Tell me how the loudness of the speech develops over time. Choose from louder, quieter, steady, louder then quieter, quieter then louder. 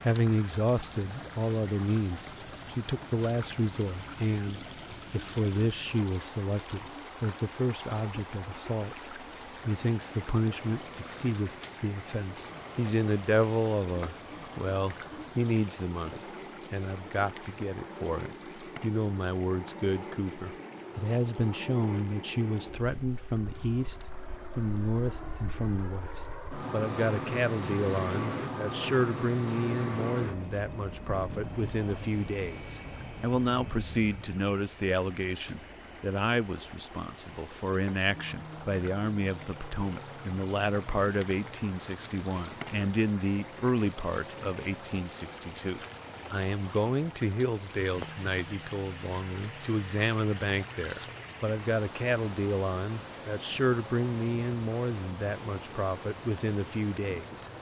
steady.